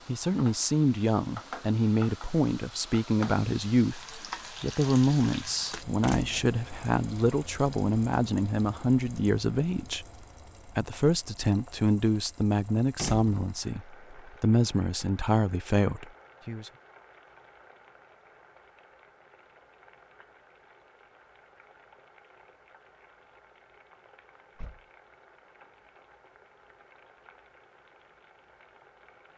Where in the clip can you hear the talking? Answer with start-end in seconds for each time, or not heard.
0.1-10.1, 10.8-16.7.